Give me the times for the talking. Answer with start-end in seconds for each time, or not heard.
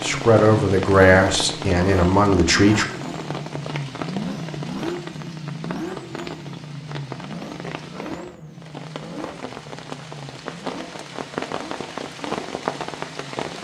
0.0-2.9.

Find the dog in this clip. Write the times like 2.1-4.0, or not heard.
not heard.